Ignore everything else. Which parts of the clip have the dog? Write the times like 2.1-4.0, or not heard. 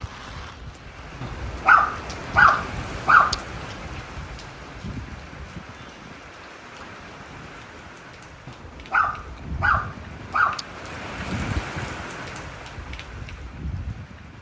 1.2-3.4, 8.4-10.7.